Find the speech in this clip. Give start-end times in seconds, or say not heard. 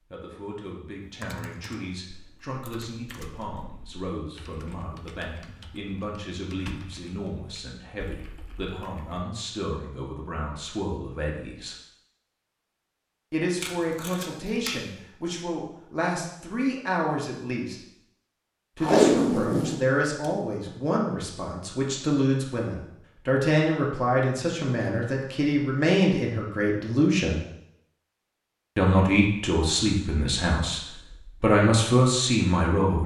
0.1-11.8, 13.3-17.8, 18.8-27.4, 28.8-33.0.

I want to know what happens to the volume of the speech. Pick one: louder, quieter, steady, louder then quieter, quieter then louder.
louder.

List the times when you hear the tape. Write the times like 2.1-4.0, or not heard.
13.6-14.7, 18.8-20.7.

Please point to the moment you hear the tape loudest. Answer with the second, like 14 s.
19 s.